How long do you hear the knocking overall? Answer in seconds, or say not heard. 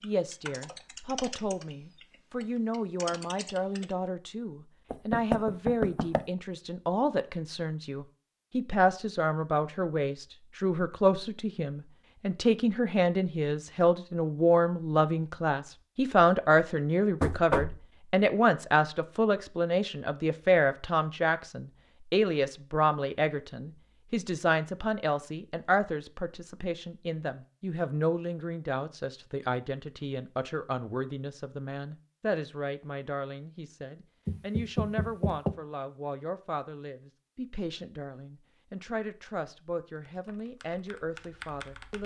3 s.